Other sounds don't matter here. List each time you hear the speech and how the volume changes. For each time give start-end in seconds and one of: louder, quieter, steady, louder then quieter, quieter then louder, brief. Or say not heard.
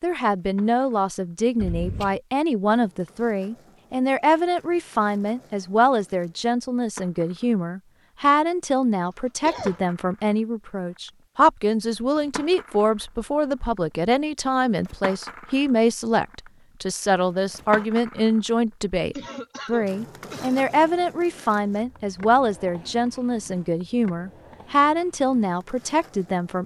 0.0-26.6 steady.